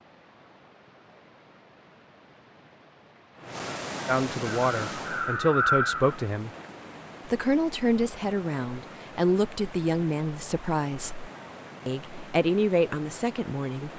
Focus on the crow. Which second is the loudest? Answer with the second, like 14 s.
6 s.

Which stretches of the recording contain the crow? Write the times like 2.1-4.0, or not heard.
4.4-6.3.